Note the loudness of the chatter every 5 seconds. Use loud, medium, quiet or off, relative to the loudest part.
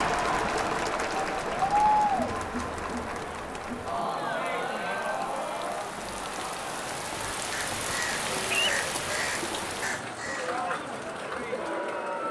loud, medium, medium.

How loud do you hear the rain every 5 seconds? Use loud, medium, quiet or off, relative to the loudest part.
medium, loud, loud.